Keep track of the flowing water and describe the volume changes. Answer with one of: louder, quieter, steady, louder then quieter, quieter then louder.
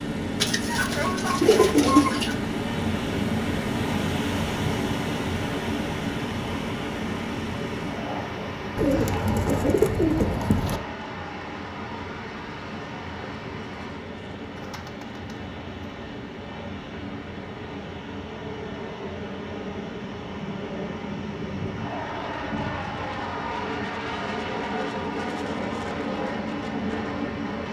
quieter.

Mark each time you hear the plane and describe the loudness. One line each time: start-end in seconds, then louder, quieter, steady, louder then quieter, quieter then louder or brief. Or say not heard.
0.0-27.6 quieter then louder.